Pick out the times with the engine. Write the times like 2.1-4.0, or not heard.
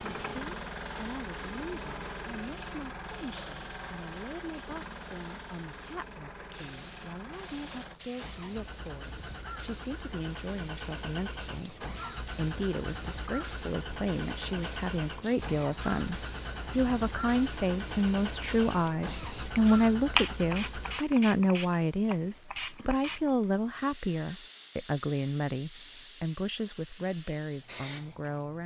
0.0-21.0.